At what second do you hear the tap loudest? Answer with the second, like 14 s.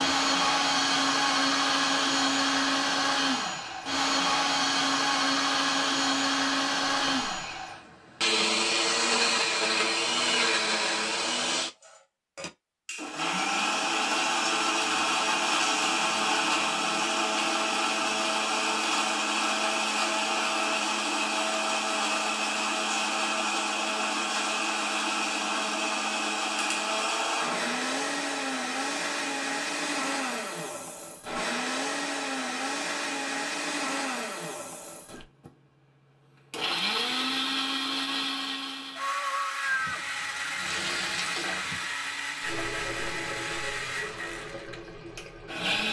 41 s.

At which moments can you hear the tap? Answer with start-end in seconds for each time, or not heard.
39.7-45.8.